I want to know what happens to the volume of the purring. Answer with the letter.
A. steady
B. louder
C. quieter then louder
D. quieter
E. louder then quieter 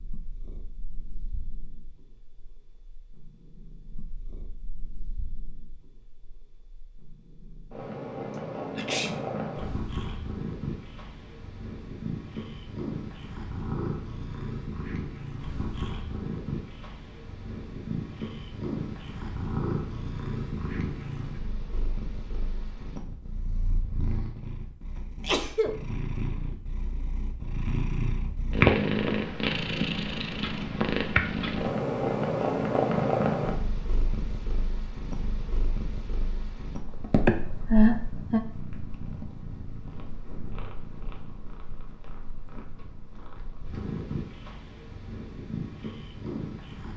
E.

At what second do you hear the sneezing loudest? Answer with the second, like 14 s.
38 s.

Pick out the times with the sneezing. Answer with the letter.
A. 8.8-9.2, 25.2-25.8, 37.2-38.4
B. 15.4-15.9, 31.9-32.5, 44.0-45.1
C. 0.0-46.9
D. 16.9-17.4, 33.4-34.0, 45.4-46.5
A.